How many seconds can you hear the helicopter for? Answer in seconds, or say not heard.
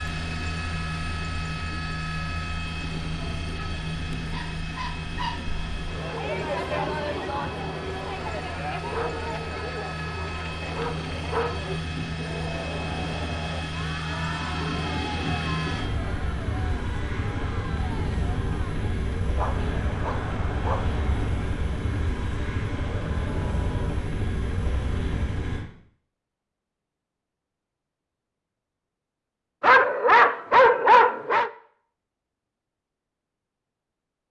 26 s.